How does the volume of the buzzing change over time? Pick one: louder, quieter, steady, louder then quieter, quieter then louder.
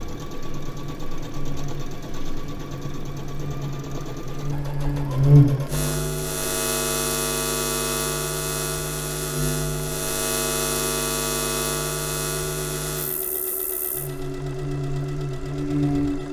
louder then quieter.